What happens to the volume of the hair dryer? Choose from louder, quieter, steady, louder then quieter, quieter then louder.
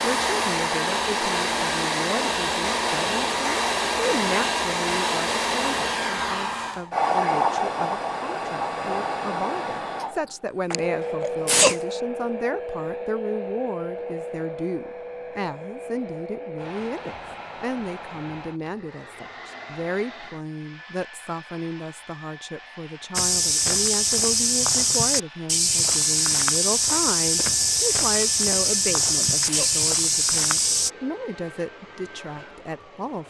quieter.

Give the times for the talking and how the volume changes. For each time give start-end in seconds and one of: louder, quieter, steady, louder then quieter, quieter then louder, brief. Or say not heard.
0.0-33.2 steady.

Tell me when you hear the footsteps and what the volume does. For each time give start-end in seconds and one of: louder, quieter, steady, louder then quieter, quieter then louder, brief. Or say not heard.
23.1-30.9 steady.